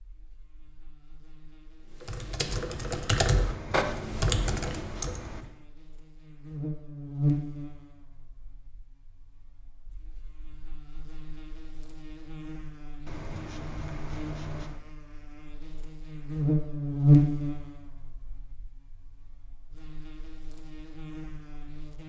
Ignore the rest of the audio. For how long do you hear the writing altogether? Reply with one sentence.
The writing can be heard for 4 seconds in total.